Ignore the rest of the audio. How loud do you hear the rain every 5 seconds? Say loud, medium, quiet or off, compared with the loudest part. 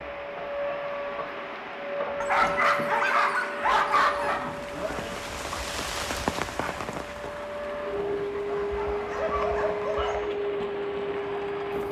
medium, loud, medium.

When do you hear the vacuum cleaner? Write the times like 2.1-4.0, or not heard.
0.0-11.8.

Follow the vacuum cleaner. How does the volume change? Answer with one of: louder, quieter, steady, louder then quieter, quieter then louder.
quieter then louder.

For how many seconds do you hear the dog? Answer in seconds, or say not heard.
4 s.